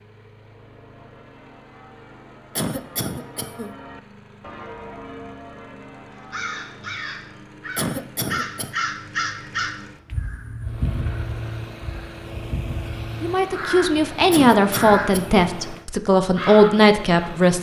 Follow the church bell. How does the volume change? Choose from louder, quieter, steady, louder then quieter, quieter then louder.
louder then quieter.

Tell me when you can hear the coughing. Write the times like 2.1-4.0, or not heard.
2.5-3.8, 7.8-8.7, 14.3-15.4.